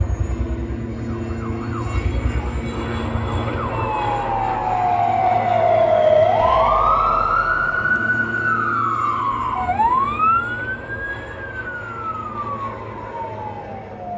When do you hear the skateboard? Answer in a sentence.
You can't hear the skateboard here.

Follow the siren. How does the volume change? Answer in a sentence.
The volume of the siren goes up, then down.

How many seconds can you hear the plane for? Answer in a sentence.
The plane can be heard for 14 seconds in total.